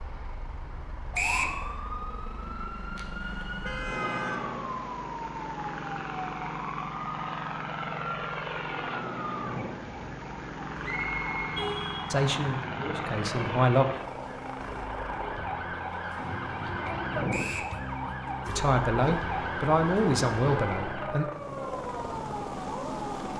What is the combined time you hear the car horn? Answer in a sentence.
You can hear the car horn for 4 seconds altogether.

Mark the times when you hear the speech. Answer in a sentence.
The speech can be heard from 12.1 to 13.8 s and from 18.4 to 21.2 s.